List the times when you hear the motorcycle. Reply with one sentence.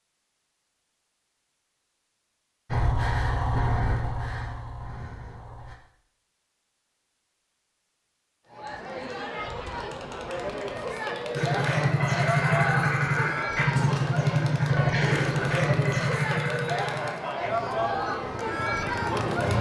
You can hear the motorcycle from 2.7 to 5.8 s and from 11.3 to 19.5 s.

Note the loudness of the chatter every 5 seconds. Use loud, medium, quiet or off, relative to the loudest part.
off, medium, loud, loud.